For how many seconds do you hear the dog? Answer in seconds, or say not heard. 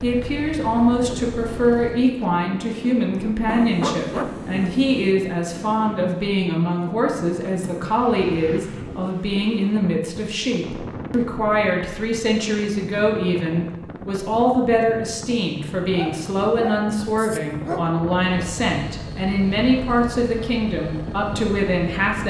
4 s.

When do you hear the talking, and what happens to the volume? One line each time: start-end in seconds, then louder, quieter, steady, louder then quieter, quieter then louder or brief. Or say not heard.
0.0-22.2 steady.